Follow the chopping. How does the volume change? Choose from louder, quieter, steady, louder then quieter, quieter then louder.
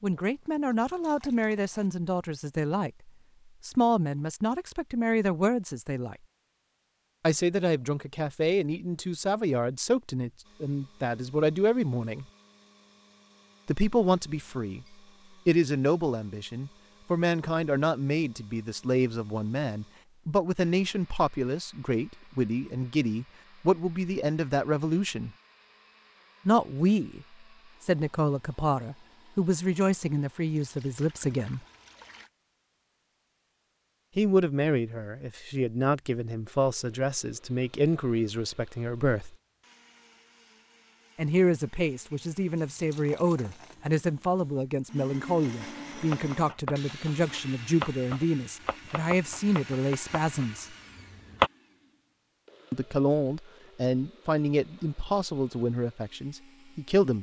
louder then quieter.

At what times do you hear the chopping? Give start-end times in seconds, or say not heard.
46.0-51.5.